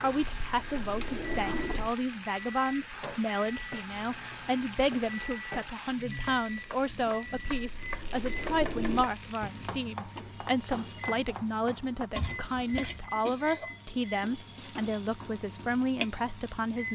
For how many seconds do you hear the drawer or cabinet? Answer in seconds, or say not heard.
4 s.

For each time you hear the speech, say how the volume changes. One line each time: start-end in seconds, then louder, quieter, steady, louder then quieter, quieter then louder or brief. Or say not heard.
0.0-16.9 steady.